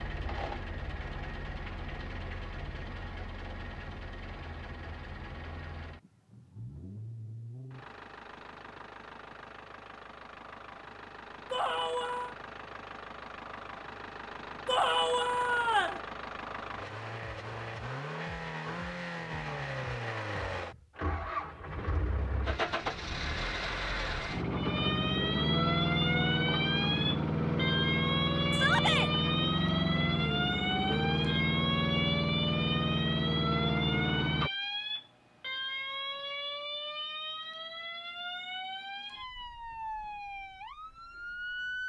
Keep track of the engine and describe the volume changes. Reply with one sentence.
The volume of the engine goes up.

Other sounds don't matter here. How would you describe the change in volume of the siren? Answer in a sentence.
The loudness of the siren goes down.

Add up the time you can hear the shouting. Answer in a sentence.
You can hear the shouting for 3 seconds altogether.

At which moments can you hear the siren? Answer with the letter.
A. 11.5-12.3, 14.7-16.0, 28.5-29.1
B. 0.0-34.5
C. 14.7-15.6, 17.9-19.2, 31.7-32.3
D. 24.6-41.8
D.